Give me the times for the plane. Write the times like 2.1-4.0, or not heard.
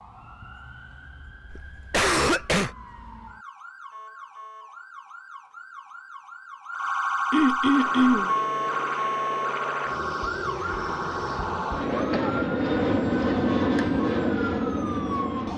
7.7-15.5.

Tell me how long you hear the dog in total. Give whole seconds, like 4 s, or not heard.
not heard.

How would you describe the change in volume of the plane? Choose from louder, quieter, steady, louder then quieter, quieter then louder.
louder.